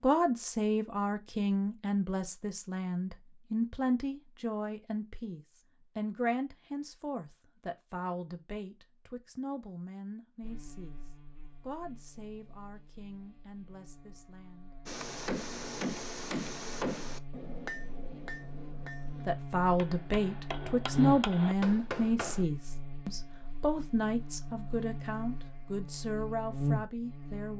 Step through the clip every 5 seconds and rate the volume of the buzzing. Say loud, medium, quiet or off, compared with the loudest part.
off, off, quiet, medium, loud, loud.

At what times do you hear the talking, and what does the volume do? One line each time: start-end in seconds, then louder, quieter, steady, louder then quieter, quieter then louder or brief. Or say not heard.
0.0-14.8 quieter
19.2-27.5 quieter.